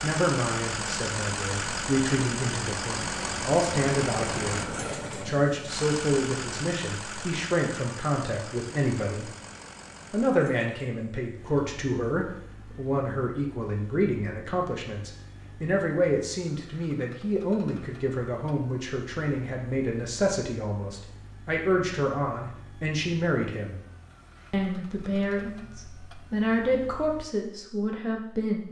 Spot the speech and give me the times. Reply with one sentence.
You can hear the speech from 0.0 to 9.3 s, from 10.1 to 23.8 s and from 24.5 to 28.6 s.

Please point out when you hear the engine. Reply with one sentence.
The engine can be heard from 0.0 to 27.2 s.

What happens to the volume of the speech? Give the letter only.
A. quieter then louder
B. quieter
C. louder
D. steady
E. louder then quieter
D.